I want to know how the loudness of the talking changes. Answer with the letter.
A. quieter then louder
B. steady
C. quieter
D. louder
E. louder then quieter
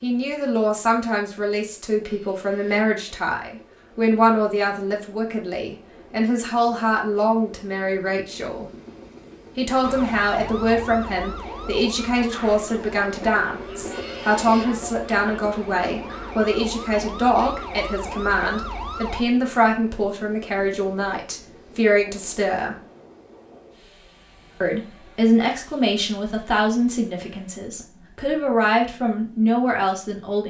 B.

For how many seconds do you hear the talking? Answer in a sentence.
The talking can be heard for 28 seconds in total.